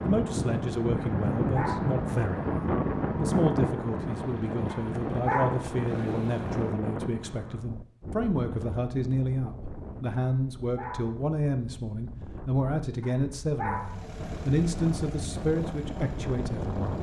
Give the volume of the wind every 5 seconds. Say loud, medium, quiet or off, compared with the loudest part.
loud, medium, quiet, medium.